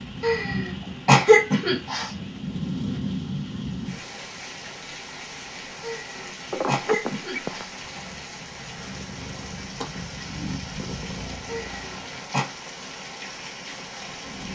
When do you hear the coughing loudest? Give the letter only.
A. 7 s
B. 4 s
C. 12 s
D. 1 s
D.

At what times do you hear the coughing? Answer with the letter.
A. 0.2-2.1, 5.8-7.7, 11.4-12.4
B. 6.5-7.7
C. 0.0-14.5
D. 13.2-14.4
A.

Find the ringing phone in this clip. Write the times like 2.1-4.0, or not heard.
6.5-7.7.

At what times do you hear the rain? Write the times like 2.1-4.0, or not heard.
0.0-14.5.